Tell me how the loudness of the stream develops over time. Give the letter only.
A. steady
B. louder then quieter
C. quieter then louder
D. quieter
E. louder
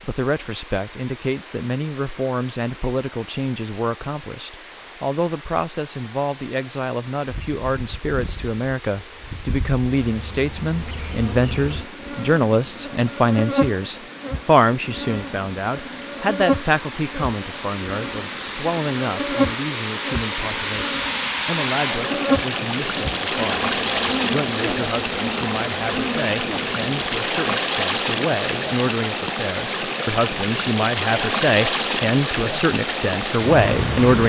E.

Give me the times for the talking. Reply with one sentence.
The talking can be heard from 0.0 to 34.2 s.